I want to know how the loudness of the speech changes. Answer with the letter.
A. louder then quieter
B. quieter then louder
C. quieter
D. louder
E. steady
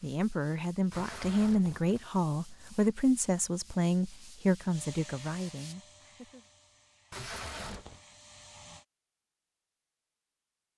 C.